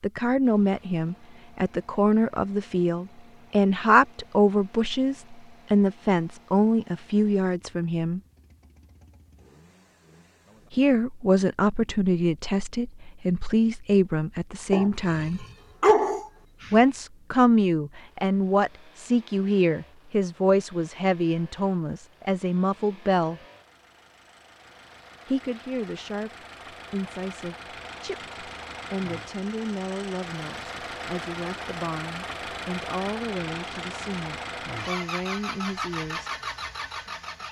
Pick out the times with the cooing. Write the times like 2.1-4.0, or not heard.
not heard.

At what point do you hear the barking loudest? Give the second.
16 s.